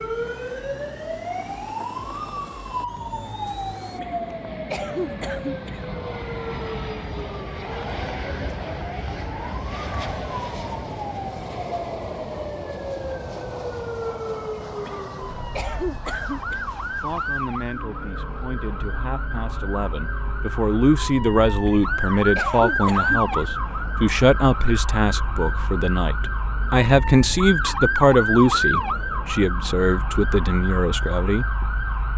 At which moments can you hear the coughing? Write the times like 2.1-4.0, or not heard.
4.0-5.8, 14.8-16.6, 21.6-23.4.